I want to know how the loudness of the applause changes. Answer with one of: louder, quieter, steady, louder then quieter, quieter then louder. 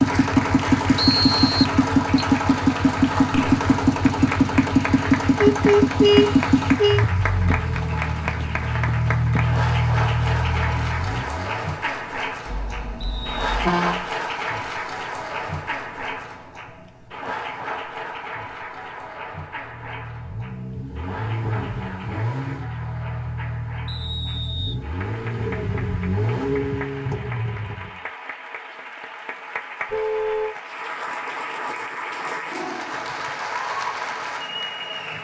quieter then louder.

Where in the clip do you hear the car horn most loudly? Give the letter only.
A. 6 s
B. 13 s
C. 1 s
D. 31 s
A.